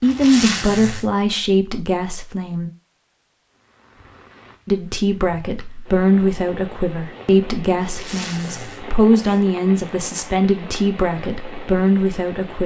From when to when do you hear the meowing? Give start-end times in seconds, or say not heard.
not heard.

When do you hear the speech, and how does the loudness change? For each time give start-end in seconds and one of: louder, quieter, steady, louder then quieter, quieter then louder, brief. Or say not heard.
0.0-2.7 brief
4.7-12.6 steady.